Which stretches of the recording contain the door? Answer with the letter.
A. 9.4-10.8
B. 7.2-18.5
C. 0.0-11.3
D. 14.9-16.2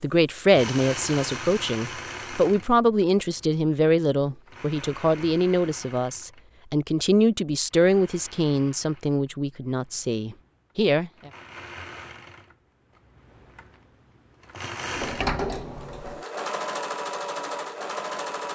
D.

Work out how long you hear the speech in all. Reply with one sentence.
The speech can be heard for 11 seconds in total.